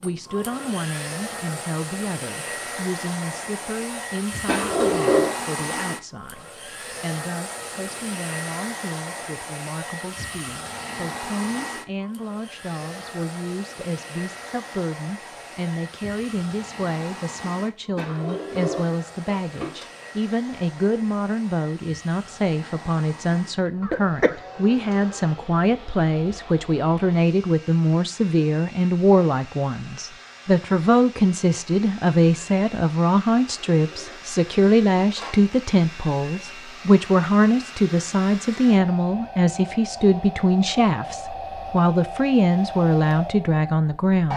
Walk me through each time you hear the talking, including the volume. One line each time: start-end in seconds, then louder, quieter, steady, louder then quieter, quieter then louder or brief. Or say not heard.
0.0-44.3 louder.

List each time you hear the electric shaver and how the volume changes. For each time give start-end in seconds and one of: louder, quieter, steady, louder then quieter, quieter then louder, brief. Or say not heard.
not heard.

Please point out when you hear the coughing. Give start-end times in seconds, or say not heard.
23.8-24.4.